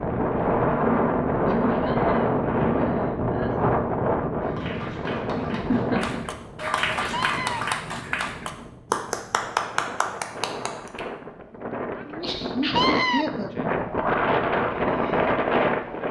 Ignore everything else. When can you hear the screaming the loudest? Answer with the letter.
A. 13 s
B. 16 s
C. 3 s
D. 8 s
A.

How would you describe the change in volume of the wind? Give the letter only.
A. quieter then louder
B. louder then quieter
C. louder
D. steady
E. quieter
A.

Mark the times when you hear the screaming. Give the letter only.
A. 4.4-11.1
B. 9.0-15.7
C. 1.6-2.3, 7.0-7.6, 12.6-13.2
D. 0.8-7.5
C.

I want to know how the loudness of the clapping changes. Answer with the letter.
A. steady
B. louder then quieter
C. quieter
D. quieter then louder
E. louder
E.